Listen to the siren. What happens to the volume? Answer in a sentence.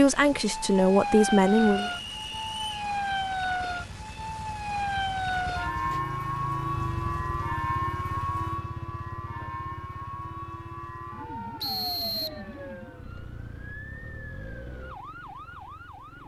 The loudness of the siren goes down.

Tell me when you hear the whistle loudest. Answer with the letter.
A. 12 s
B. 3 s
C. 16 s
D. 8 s
A.